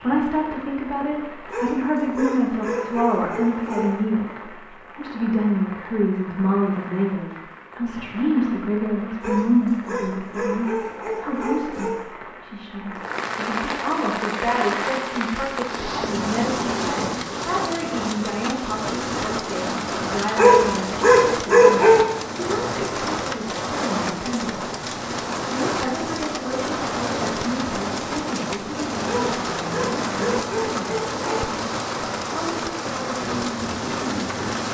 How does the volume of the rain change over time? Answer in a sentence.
The loudness of the rain goes up.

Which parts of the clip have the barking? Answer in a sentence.
The barking can be heard from 1.5 to 4.0 s, from 9.2 to 12.1 s, from 20.4 to 22.1 s and from 29.1 to 31.4 s.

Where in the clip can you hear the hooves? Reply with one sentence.
The hooves can't be heard in this clip.